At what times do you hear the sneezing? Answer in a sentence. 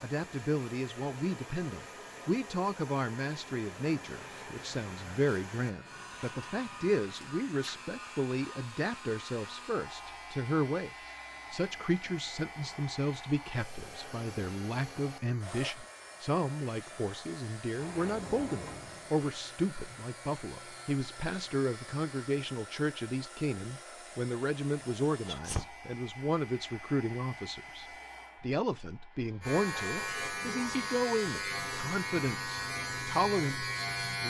The sneezing can be heard from 25.1 to 25.8 s.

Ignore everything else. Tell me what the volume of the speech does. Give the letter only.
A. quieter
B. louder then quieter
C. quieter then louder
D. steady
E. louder
D.